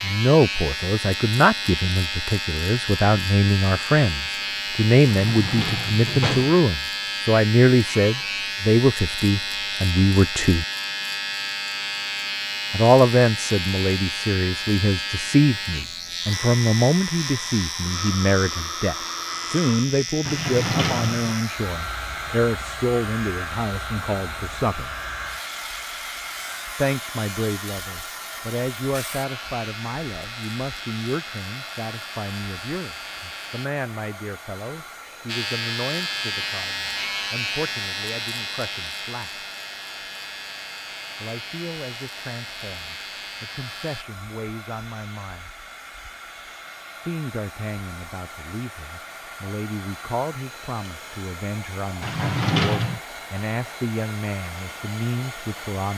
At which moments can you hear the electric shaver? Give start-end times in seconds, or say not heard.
0.0-33.7, 35.2-44.0.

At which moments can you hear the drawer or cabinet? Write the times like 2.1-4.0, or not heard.
5.0-6.5, 20.2-21.4, 52.0-53.0.